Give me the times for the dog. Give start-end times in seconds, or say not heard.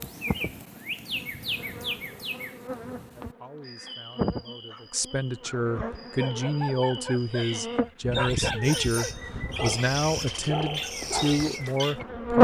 4.7-11.5.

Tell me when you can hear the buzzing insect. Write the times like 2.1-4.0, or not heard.
0.0-12.3.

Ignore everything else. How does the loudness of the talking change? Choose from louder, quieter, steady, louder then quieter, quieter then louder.
louder.